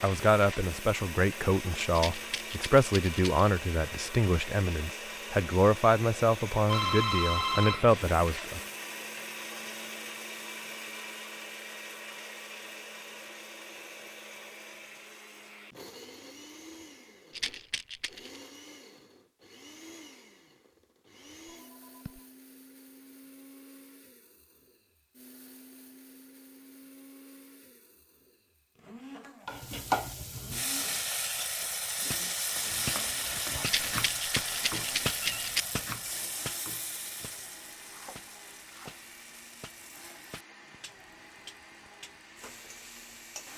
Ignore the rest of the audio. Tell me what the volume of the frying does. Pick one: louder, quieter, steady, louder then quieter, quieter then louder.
quieter.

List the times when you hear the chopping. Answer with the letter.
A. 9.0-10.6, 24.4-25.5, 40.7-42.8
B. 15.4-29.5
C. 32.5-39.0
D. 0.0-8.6
C.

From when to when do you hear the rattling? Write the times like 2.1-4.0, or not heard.
1.9-3.5, 17.3-18.4, 33.6-35.6.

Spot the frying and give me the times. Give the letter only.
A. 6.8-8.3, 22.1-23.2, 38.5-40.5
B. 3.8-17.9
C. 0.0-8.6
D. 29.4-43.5
D.